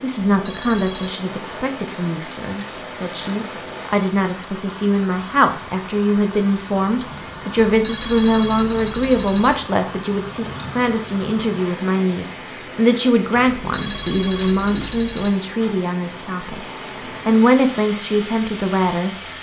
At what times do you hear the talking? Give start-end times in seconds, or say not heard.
0.0-16.6, 17.2-19.1.